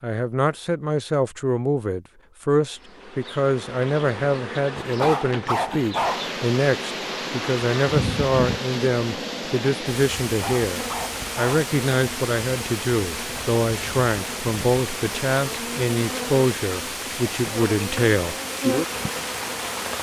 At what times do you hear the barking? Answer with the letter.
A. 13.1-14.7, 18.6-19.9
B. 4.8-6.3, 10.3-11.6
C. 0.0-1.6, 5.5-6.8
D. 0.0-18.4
B.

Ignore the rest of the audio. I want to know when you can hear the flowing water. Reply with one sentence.
The flowing water can be heard from 6.0 to 19.9 s.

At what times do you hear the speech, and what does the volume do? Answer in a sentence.
The speech can be heard from 0.0 to 18.4 s, at a steady volume.